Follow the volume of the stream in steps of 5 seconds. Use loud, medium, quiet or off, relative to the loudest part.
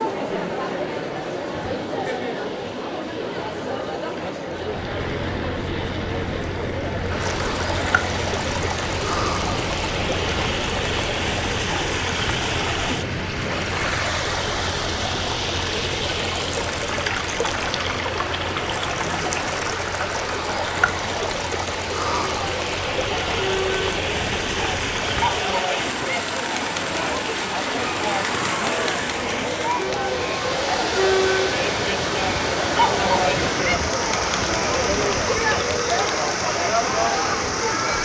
quiet, loud, loud, loud, loud, loud, loud, loud.